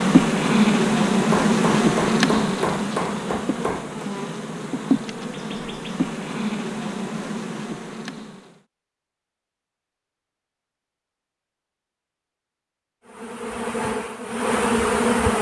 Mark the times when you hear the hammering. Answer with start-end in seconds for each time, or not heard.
1.3-4.0.